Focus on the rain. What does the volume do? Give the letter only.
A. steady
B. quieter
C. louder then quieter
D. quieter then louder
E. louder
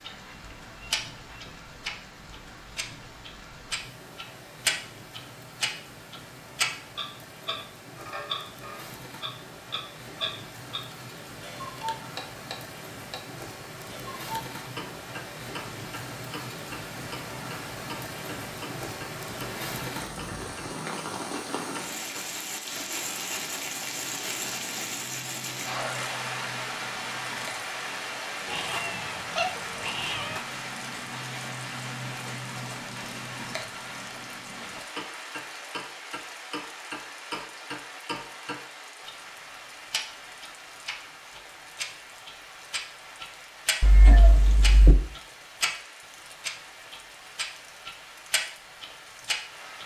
C.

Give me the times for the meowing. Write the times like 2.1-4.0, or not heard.
0.1-1.6, 28.4-30.4, 43.8-45.0.